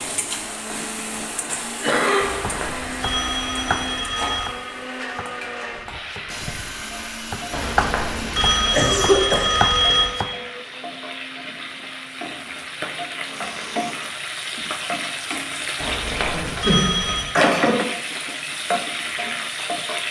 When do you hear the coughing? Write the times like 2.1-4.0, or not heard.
1.8-2.2, 8.7-9.5, 16.3-17.8.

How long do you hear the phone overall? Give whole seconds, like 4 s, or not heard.
7 s.